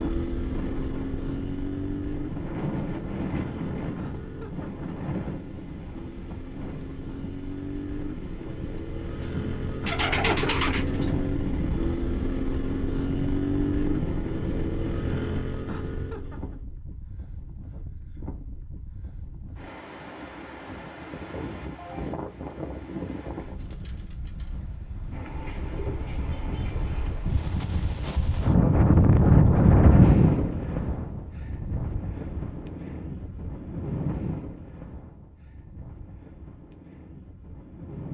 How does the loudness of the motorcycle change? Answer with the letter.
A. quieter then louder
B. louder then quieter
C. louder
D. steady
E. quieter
A.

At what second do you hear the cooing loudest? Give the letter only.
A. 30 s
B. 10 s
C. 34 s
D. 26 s
B.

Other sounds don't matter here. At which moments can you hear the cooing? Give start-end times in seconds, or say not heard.
9.8-11.2, 25.1-27.1.